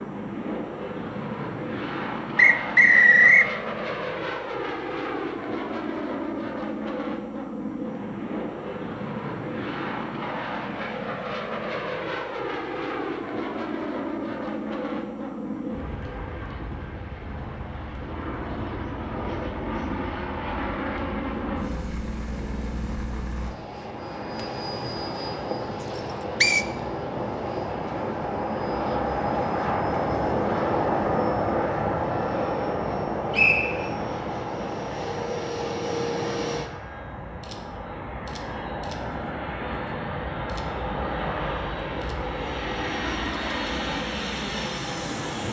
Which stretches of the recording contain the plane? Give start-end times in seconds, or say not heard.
0.0-45.4.